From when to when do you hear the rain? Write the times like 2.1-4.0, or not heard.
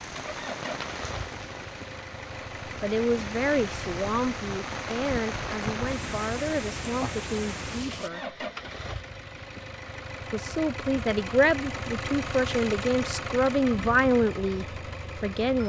0.0-8.1.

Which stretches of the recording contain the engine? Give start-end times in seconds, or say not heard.
0.0-15.6.